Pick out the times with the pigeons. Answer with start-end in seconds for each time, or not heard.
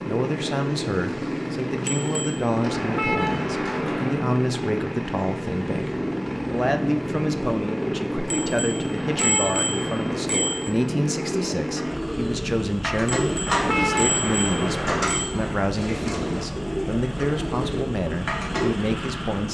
11.2-18.7.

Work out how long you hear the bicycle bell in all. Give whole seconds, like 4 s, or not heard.
5 s.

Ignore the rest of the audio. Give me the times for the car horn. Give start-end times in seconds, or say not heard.
2.7-4.2, 8.9-10.3, 13.4-15.1.